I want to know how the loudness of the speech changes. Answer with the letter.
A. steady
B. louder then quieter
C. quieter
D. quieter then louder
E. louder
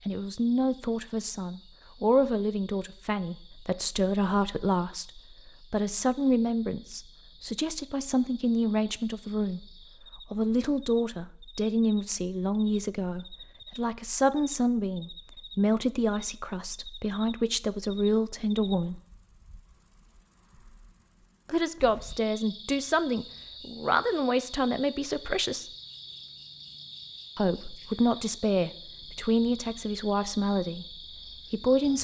A.